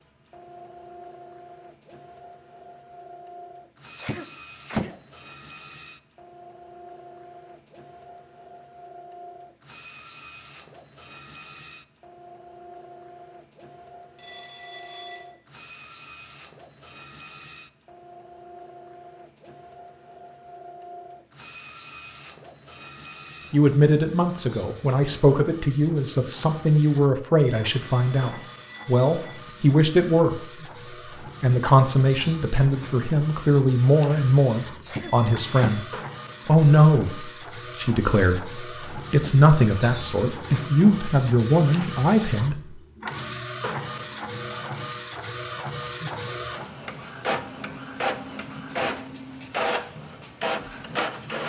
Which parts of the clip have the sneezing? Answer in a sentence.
You can hear the sneezing from 4.0 to 4.9 s and from 34.9 to 35.8 s.